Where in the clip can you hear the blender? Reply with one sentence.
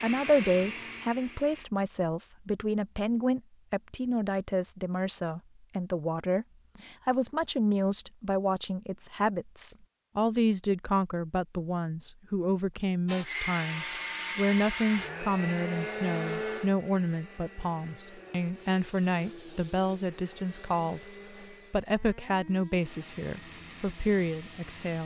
You can hear the blender from 0.0 to 1.6 s and from 13.1 to 25.0 s.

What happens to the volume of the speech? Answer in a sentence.
The volume of the speech stays about the same.